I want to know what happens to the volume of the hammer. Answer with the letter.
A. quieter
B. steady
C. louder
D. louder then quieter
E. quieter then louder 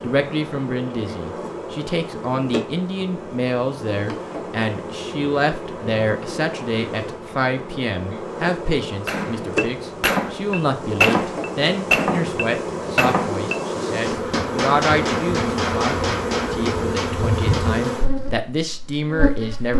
A.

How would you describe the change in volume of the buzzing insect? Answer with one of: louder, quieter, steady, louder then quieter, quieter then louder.
louder.